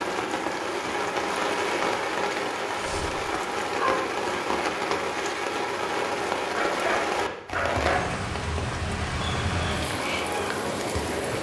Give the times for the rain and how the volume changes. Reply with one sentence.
The rain can be heard from 0.0 to 11.3 s, at a steady volume.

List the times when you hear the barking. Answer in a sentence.
The barking can be heard from 2.7 to 3.9 s and from 6.5 to 8.2 s.